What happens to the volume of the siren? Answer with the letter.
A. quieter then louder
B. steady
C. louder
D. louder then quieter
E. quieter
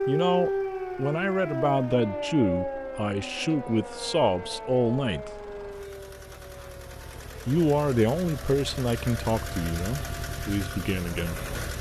E.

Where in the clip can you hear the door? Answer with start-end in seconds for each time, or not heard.
not heard.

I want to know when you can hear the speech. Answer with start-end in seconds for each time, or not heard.
0.1-5.5, 7.5-11.4.